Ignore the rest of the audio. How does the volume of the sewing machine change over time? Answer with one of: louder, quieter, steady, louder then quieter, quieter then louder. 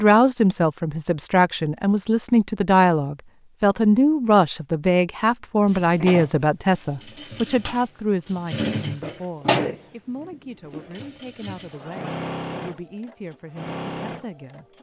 louder then quieter.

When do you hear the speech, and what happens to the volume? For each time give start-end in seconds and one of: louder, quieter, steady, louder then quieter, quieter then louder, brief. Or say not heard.
0.0-14.7 quieter.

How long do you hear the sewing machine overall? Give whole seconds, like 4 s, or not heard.
9 s.